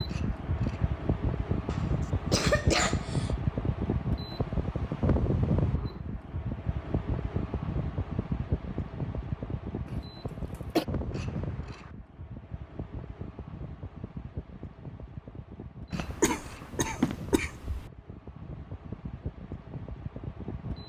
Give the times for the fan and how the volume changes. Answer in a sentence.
You can hear the fan from 0.0 to 20.8 s, getting quieter.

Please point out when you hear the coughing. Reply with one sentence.
You can hear the coughing from 1.6 to 3.4 s, from 9.8 to 10.8 s and from 15.9 to 17.9 s.